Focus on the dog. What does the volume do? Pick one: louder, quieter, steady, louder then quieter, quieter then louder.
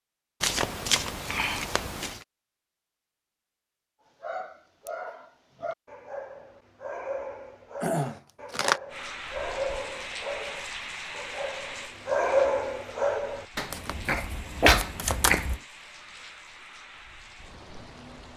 louder.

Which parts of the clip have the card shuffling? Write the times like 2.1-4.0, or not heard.
0.4-2.2, 7.8-8.8, 13.7-15.6.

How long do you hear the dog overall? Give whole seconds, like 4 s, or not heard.
11 s.